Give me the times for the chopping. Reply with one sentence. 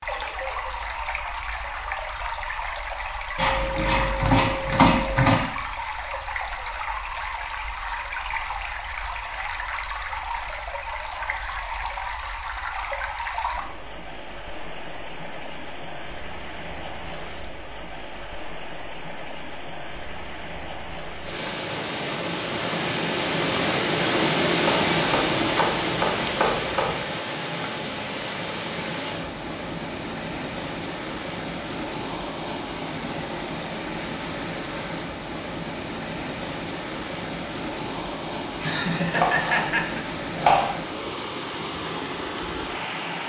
You can hear the chopping from 3.4 to 5.3 s, from 24.6 to 27.1 s and from 38.6 to 40.8 s.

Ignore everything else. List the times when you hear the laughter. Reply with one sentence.
The laughter can be heard from 0.1 to 0.8 s and from 38.6 to 40.0 s.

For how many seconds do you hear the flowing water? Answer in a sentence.
You can hear the flowing water for 43 seconds altogether.